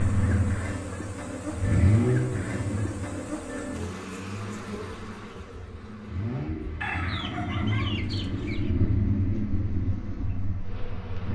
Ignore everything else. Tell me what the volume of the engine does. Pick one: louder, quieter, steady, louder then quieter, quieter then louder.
quieter then louder.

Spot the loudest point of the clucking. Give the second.
7 s.